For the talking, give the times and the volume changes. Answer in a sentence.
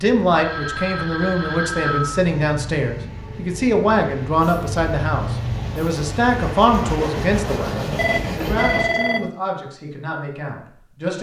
The talking can be heard from 0.0 to 11.1 s, getting quieter.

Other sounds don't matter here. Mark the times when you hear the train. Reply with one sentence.
The train can be heard from 0.1 to 9.0 s.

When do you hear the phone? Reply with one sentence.
You can hear the phone from 0.3 to 2.2 s and from 8.0 to 9.3 s.